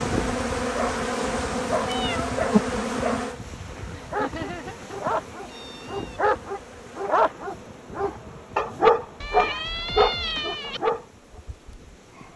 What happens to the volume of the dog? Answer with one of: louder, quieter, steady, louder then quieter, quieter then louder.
louder.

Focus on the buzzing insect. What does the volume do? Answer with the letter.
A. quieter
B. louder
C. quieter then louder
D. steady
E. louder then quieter
A.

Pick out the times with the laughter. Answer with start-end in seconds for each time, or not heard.
3.9-5.0.